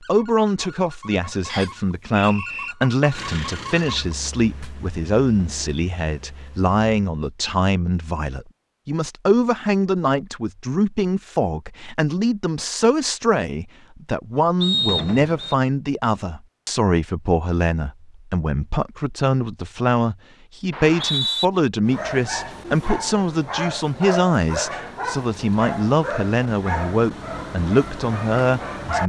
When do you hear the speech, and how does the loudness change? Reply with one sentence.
The speech can be heard from 0.0 to 29.0 s, at a steady volume.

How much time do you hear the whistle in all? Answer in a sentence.
You can hear the whistle for 3 seconds altogether.